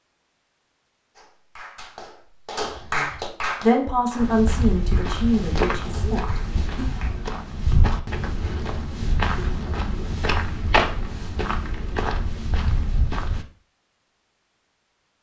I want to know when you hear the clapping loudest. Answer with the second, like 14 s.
3 s.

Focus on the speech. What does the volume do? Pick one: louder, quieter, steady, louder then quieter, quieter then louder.
quieter.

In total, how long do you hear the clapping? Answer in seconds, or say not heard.
6 s.